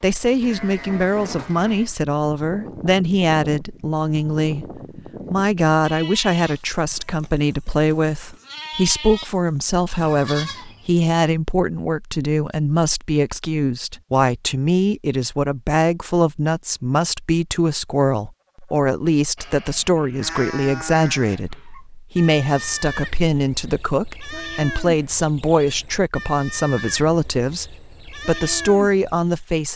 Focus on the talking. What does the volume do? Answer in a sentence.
The volume of the talking stays about the same.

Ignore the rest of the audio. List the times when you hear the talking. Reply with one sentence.
You can hear the talking from 0.0 to 29.7 s.